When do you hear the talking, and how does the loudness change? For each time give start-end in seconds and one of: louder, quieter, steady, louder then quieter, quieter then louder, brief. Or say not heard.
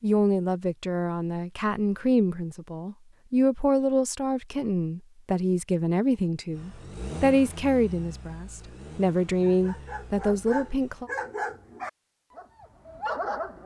0.0-11.1 steady.